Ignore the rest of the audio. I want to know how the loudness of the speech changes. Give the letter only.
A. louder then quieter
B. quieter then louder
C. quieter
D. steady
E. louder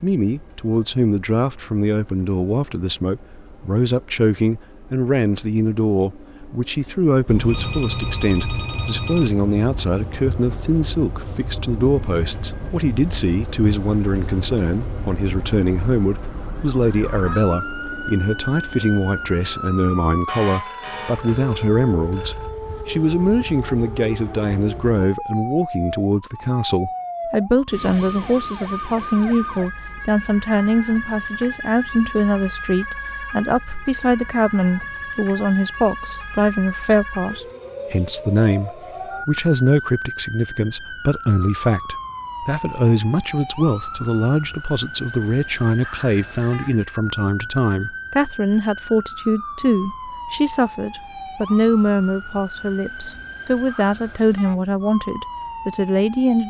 D.